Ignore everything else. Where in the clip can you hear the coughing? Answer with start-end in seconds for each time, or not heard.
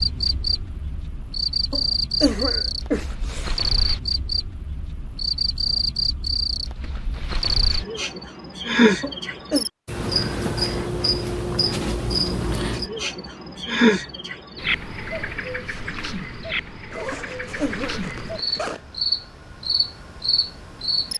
1.7-3.5, 9.0-9.7, 17.1-18.1.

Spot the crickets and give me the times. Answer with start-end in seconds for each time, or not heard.
0.0-21.1.